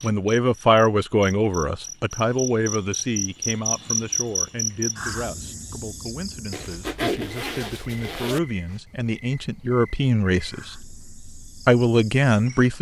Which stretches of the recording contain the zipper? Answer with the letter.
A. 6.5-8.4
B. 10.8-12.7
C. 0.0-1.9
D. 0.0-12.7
A.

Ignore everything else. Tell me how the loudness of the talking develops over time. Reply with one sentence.
The loudness of the talking goes down, then up.